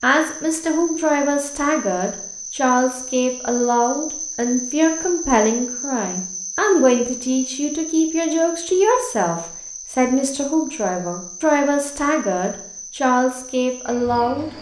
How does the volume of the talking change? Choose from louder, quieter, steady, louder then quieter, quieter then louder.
steady.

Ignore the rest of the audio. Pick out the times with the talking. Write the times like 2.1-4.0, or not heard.
0.0-14.5.